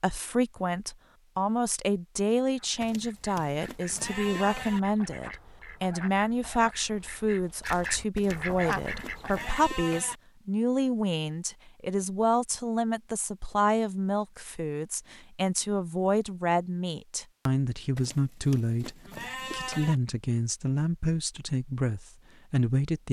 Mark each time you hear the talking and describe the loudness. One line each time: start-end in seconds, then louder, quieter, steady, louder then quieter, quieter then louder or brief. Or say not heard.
0.0-23.0 steady.